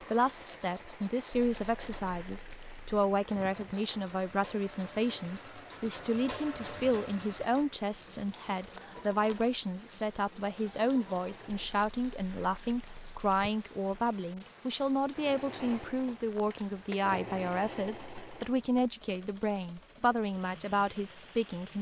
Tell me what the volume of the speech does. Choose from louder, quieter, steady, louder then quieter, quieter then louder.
steady.